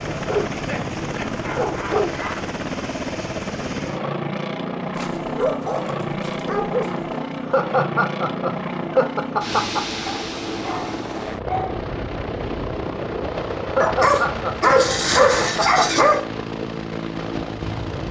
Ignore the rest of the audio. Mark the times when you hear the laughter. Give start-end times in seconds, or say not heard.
0.6-2.4, 7.4-9.8, 13.7-16.1.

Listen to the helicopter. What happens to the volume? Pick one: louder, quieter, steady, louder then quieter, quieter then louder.
steady.